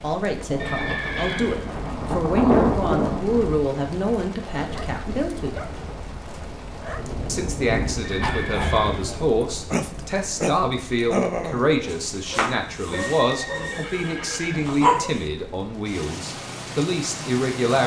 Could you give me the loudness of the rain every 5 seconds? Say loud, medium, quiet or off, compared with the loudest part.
loud, medium, quiet, medium.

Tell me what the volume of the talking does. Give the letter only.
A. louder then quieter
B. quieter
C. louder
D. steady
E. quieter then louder
D.